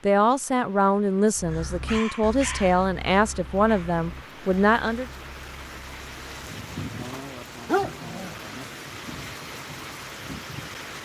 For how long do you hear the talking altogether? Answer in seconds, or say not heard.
5 s.